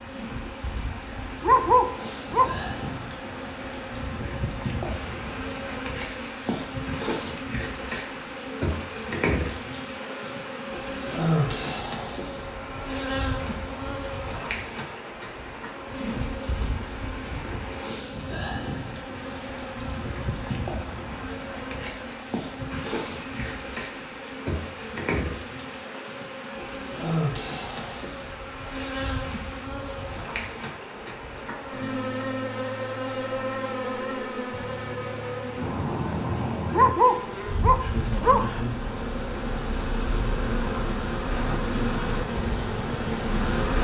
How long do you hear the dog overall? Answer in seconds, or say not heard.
3 s.